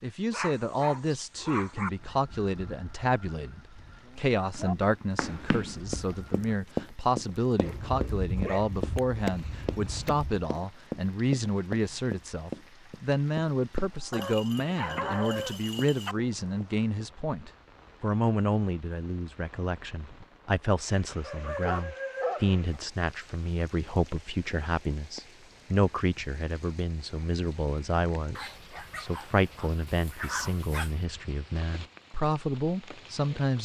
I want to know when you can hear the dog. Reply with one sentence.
The dog can be heard from 0.3 to 1.9 s, from 7.6 to 10.5 s, from 14.1 to 16.1 s, from 21.2 to 22.8 s and from 28.4 to 30.9 s.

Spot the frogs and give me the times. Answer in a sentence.
The frogs can't be heard in this clip.